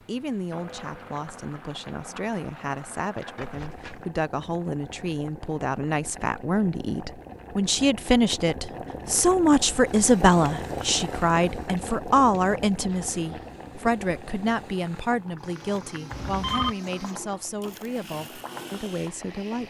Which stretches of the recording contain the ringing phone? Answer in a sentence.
The ringing phone can be heard from 3.4 to 4.1 s and from 16.1 to 16.8 s.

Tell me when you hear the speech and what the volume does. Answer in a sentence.
The speech can be heard from 0.1 to 19.6 s, getting louder then quieter.